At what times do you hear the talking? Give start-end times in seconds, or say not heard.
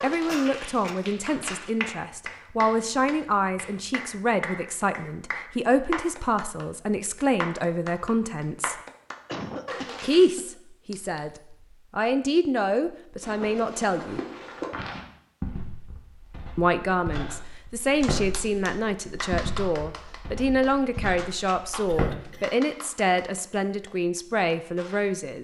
0.0-8.8, 10.0-14.2, 16.6-25.3.